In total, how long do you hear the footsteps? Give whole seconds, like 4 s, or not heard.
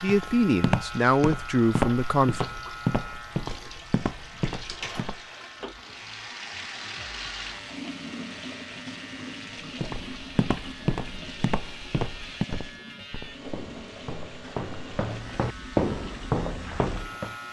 13 s.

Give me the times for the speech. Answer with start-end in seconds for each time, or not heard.
0.0-2.5.